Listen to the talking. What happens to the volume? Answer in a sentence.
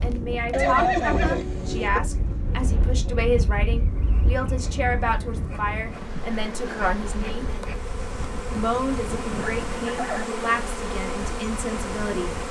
The loudness of the talking stays about the same.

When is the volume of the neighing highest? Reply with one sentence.
The loudest moment of the neighing is at 1 second.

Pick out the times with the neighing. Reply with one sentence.
You can hear the neighing from 0.5 to 2.0 s and from 9.3 to 10.2 s.